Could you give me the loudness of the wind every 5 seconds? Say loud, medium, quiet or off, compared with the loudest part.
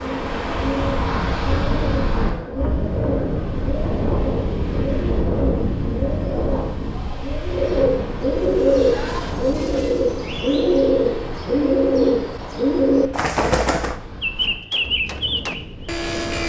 loud, loud, quiet, medium.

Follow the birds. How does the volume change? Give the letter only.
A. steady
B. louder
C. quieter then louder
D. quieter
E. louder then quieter
B.